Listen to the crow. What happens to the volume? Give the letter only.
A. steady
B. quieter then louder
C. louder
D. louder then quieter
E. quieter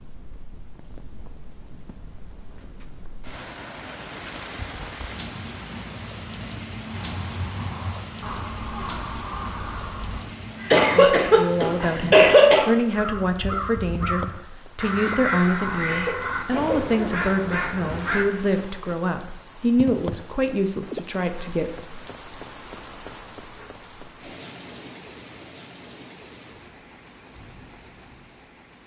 C.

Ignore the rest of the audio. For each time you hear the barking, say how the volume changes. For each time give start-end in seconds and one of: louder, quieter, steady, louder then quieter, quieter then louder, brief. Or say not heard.
not heard.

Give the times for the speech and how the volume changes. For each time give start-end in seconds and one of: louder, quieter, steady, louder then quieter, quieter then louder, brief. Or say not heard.
10.9-21.7 steady.